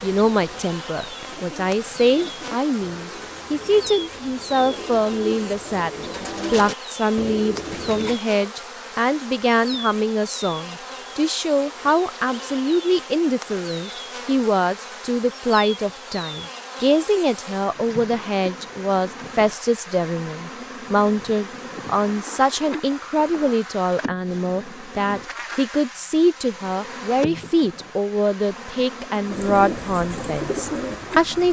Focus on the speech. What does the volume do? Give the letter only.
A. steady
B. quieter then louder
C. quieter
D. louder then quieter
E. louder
A.